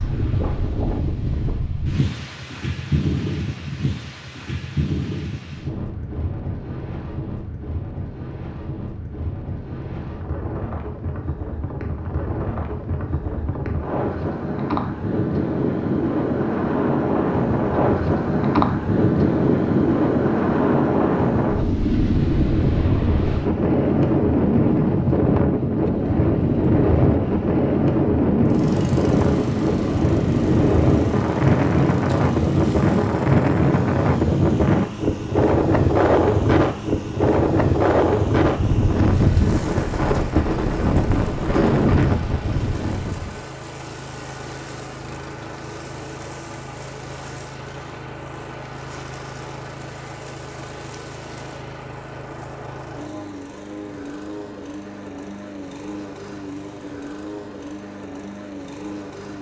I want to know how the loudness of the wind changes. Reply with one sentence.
The volume of the wind goes up.